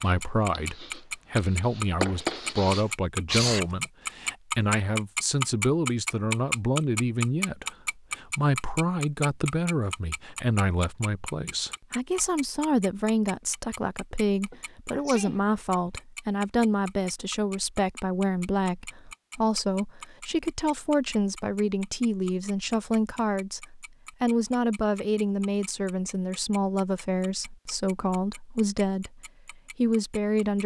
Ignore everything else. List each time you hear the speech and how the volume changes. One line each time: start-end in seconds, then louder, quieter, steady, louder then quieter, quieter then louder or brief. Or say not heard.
0.0-30.6 steady.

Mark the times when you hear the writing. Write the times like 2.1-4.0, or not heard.
0.0-3.8.